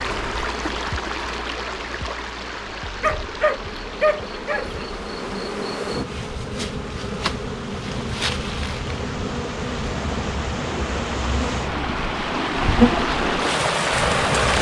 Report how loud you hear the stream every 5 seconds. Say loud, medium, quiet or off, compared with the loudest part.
medium, quiet, loud.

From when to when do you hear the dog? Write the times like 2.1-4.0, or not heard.
3.0-4.7.